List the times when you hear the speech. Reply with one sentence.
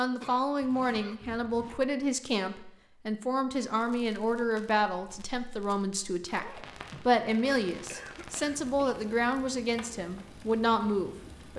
The speech can be heard from 0.0 to 11.5 s.